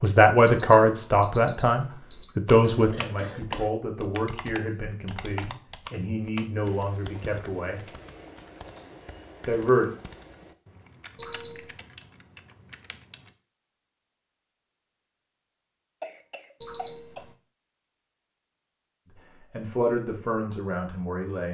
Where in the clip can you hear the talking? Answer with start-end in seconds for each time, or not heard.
0.0-7.8, 9.4-9.9, 19.5-21.4.